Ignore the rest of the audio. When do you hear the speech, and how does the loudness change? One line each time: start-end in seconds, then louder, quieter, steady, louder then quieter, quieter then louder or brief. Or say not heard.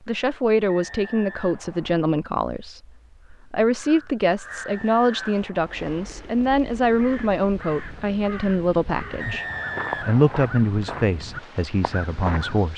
0.1-12.7 steady.